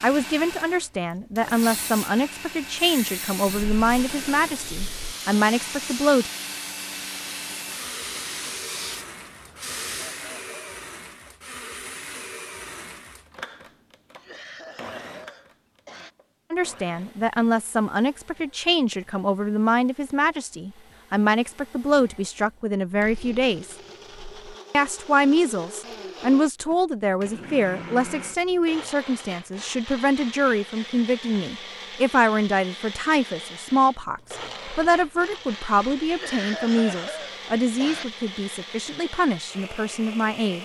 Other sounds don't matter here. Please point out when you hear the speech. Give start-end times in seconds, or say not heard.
0.0-6.3, 16.5-23.8, 24.7-40.6.